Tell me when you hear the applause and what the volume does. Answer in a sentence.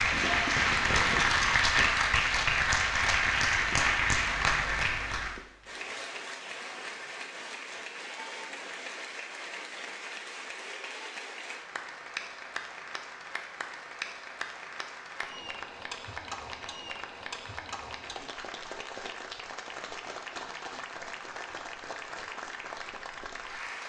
You can hear the applause from 0.0 to 23.8 s, getting quieter.